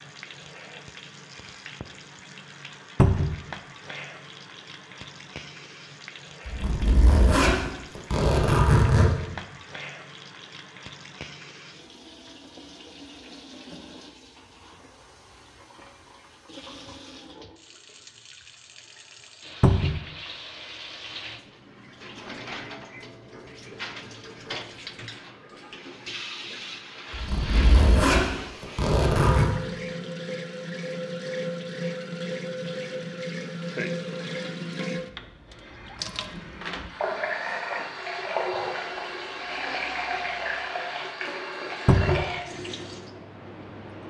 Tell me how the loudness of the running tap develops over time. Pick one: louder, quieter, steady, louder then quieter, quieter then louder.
louder.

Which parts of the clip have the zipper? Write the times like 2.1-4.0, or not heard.
6.5-9.1, 27.1-29.6.